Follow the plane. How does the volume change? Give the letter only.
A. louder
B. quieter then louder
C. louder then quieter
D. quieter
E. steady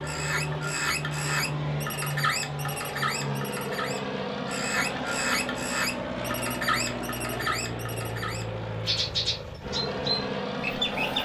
E.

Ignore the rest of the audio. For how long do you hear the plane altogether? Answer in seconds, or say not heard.
11 s.